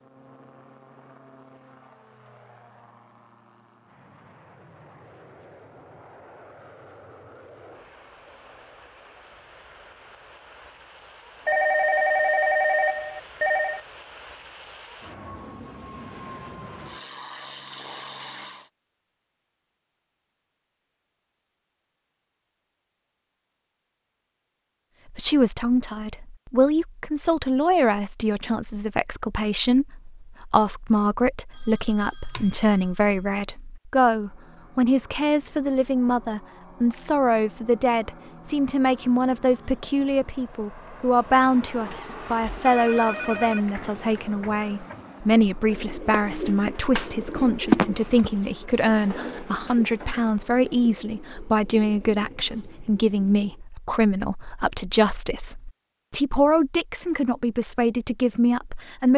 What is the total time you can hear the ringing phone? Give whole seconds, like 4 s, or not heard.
6 s.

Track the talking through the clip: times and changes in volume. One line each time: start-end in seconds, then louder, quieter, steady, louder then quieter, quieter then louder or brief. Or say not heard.
25.1-59.1 steady.